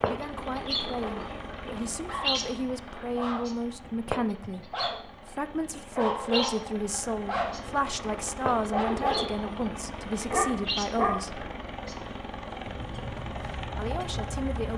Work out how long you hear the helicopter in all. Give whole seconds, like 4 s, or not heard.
15 s.